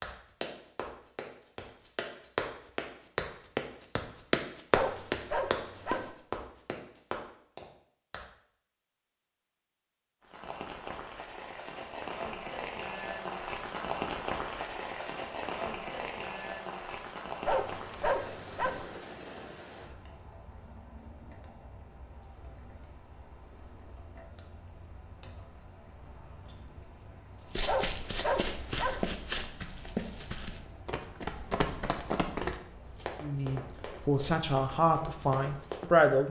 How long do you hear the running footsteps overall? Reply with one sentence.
The running footsteps can be heard for 17 seconds in total.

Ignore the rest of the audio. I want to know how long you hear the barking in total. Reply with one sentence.
The barking can be heard for 4 seconds in total.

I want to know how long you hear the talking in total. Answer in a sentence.
You can hear the talking for 3 seconds altogether.